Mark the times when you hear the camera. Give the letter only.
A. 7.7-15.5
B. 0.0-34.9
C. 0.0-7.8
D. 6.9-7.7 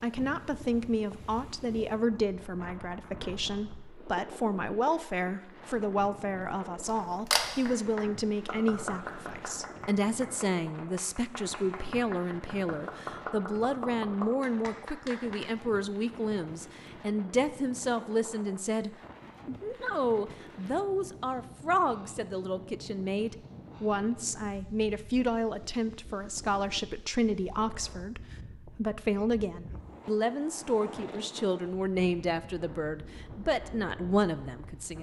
D.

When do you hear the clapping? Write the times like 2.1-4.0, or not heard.
7.7-15.5.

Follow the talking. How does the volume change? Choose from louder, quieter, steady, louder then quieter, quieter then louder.
steady.